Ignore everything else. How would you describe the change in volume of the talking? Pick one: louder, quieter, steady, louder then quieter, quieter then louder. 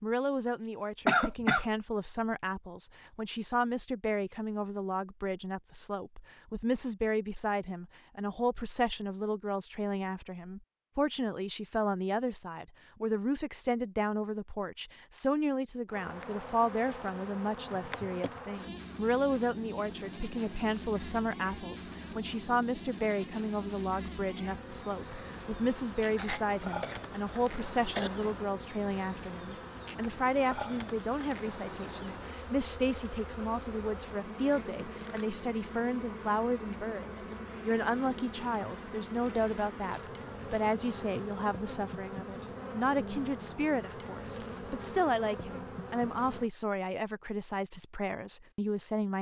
steady.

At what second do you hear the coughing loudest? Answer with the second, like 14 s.
1 s.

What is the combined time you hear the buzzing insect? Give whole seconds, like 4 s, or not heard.
31 s.